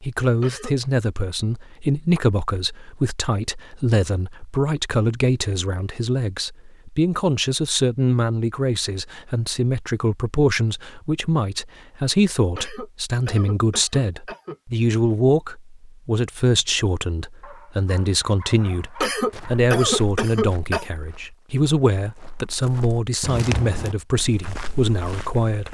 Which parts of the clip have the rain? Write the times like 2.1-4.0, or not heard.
not heard.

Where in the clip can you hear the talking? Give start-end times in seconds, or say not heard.
0.0-25.6.